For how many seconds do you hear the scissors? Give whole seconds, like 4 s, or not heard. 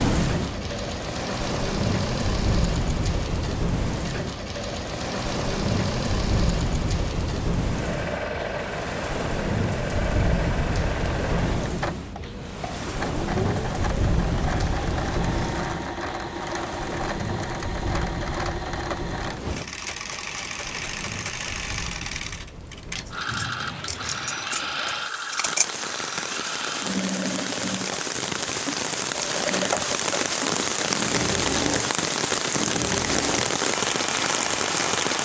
3 s.